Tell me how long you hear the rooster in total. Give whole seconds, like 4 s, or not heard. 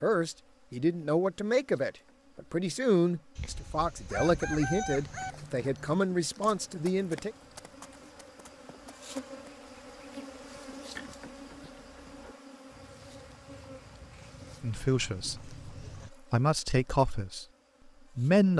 2 s.